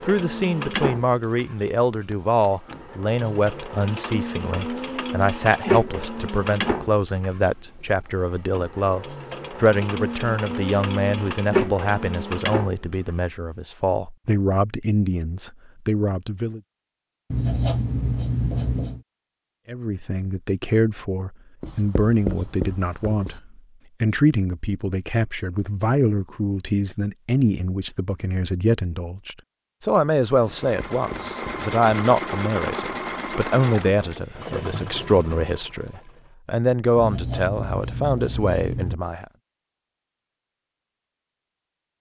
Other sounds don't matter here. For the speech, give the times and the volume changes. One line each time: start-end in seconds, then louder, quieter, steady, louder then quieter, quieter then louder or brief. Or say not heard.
0.0-16.6 steady
19.6-39.2 steady.